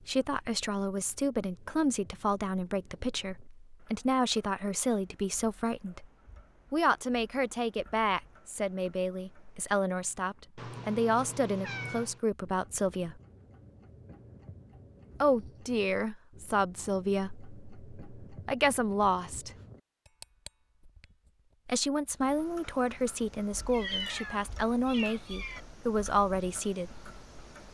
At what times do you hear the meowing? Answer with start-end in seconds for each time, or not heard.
10.6-12.2, 23.7-25.6.